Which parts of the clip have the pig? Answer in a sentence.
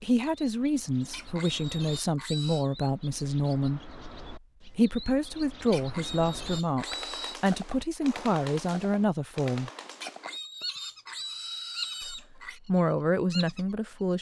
You can hear the pig from 1.0 to 2.6 s, from 5.6 to 7.3 s and from 9.8 to 12.6 s.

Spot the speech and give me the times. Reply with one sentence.
The speech can be heard from 0.0 to 4.0 s, from 4.8 to 9.7 s and from 12.0 to 14.1 s.